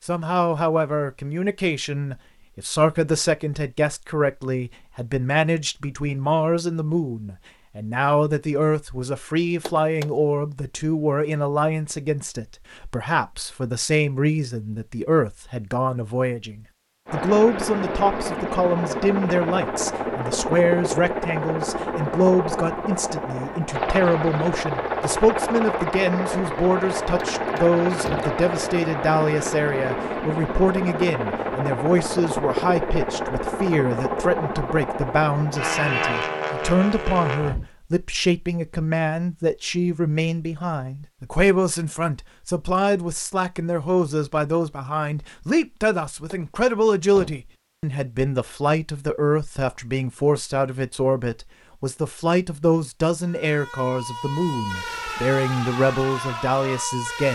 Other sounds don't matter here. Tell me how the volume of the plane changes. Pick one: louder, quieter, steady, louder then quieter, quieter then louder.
steady.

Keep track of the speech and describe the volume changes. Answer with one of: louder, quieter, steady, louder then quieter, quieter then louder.
steady.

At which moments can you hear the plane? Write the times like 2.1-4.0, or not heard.
17.1-37.7.